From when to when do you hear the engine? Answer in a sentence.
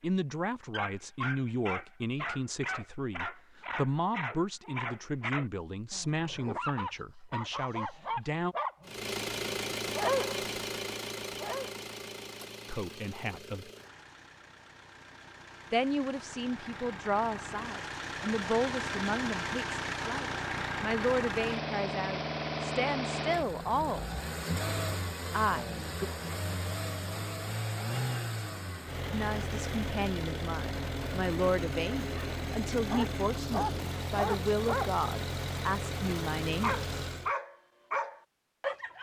The engine can be heard from 8.8 to 37.3 s.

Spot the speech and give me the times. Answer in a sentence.
You can hear the speech from 0.0 to 8.6 s, from 12.7 to 13.7 s, from 15.7 to 24.1 s, from 25.3 to 26.1 s and from 29.1 to 36.8 s.